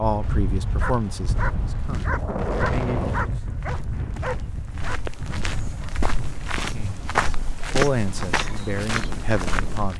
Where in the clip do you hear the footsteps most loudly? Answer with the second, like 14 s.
8 s.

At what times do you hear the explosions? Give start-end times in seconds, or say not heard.
2.0-3.4.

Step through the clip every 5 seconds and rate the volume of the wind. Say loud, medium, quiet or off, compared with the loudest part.
loud, medium.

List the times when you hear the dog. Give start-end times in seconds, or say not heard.
0.8-6.0.